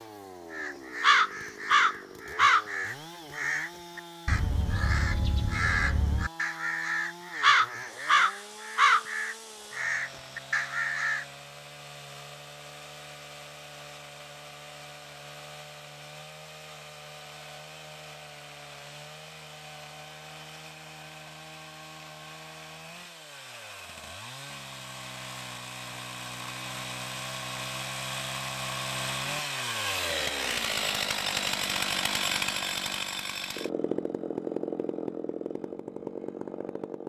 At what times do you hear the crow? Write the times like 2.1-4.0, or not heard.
0.5-11.2.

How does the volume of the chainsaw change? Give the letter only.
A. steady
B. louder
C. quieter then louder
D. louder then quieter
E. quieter
B.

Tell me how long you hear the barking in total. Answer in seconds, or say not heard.
not heard.